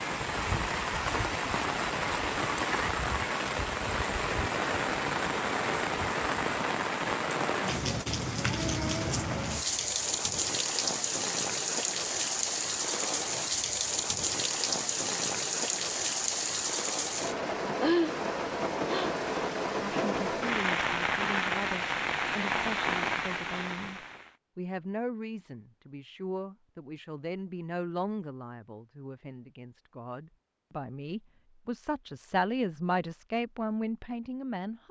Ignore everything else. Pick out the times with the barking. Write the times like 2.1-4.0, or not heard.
not heard.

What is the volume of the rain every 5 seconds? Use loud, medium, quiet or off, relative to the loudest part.
loud, loud, loud, loud, loud, off, off.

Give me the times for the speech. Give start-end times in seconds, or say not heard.
19.8-34.8.